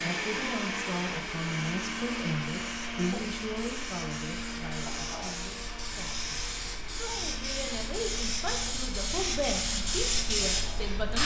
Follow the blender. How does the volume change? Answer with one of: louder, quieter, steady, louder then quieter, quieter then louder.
quieter.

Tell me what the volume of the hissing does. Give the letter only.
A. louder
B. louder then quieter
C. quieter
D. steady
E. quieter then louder
A.